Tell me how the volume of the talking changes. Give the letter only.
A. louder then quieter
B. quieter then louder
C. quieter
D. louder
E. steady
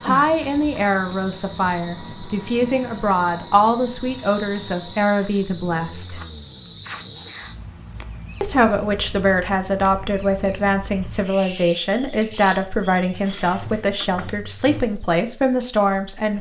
E.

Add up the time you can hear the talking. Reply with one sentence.
The talking can be heard for 14 seconds in total.